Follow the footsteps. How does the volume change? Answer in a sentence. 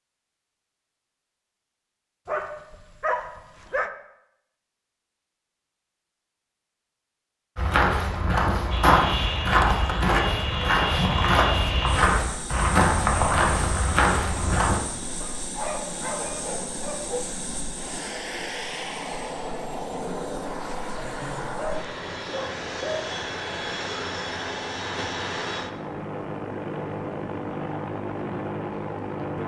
The loudness of the footsteps stays about the same.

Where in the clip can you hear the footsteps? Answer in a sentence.
The footsteps can be heard from 7.5 to 14.8 s.